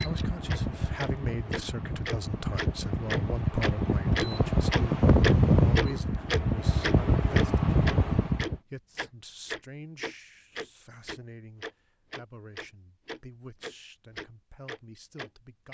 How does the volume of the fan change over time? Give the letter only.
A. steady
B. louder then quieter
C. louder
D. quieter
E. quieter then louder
C.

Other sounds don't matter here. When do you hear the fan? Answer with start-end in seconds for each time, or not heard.
0.0-8.6.